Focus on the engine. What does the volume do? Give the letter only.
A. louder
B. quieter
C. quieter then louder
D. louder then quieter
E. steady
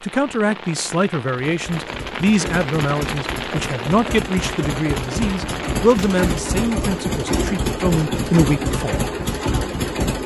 A.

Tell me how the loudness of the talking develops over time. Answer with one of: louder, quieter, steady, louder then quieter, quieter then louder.
steady.